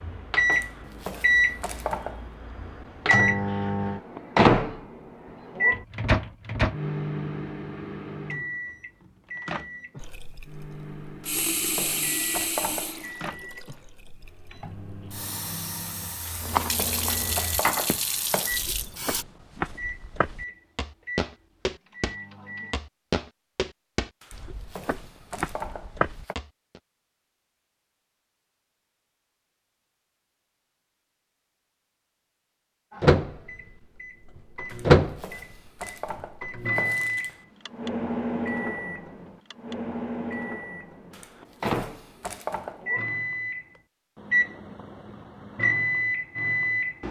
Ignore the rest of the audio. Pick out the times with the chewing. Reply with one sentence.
The chewing can't be heard in this clip.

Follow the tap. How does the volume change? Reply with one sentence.
The volume of the tap goes down, then up.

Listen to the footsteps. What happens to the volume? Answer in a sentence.
The volume of the footsteps goes up.